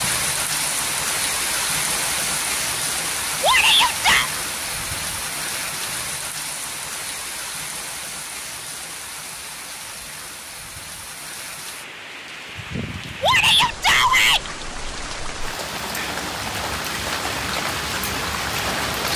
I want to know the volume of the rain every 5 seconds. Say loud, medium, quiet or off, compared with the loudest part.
loud, medium, medium, loud.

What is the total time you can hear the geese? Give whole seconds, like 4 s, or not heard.
not heard.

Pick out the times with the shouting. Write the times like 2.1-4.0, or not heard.
3.4-4.3, 13.2-14.4.